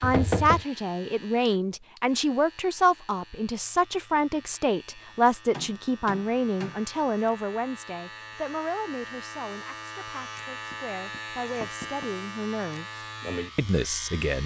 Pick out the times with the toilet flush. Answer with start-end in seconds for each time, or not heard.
not heard.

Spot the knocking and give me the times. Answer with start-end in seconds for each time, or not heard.
0.0-0.7, 5.5-6.8, 10.7-12.1.